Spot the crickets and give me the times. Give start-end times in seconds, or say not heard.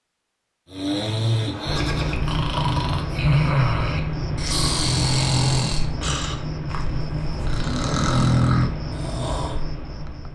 1.6-10.3.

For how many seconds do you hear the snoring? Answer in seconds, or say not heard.
9 s.